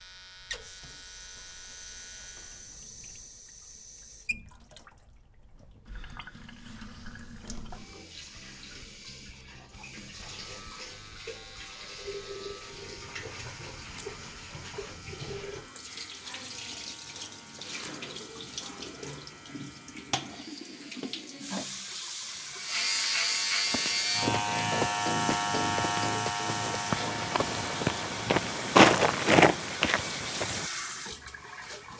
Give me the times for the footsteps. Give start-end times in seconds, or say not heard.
23.6-30.7.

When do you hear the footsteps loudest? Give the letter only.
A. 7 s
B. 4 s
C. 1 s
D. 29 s
D.